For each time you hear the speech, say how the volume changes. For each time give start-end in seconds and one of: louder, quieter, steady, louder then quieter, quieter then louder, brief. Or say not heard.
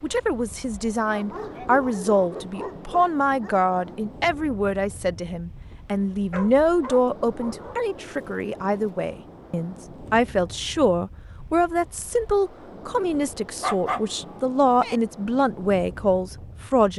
0.0-16.9 steady.